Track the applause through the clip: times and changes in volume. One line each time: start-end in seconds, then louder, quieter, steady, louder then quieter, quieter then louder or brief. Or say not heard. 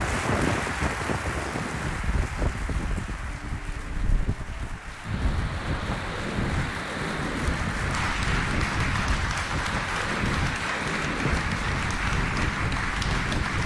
0.0-13.6 quieter then louder.